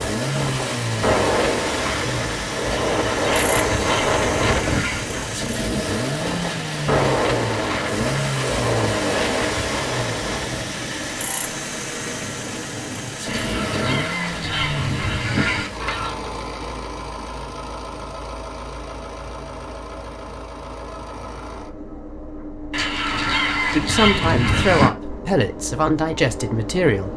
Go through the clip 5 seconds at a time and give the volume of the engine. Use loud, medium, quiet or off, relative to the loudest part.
loud, loud, loud, medium, medium, medium.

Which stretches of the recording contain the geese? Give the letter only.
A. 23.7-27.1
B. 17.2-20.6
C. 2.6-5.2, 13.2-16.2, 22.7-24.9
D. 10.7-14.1
C.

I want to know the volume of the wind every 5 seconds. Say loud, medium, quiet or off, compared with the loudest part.
loud, loud, medium, off, off, off.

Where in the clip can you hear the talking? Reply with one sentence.
The talking can be heard from 23.7 to 27.1 s.